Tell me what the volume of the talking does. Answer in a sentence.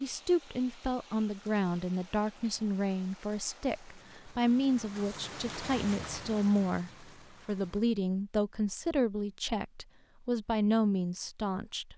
The volume of the talking stays about the same.